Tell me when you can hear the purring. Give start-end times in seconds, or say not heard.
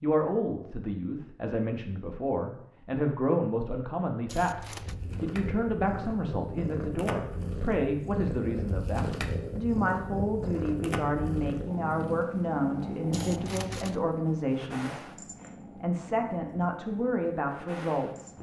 4.7-18.3.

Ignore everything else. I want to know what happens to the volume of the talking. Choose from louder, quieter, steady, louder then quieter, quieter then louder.
steady.